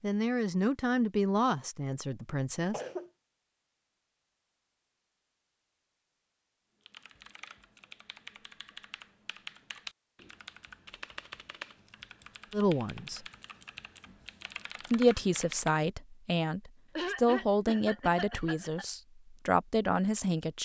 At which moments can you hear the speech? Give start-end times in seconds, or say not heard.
0.0-2.8, 12.5-13.2, 14.9-20.6.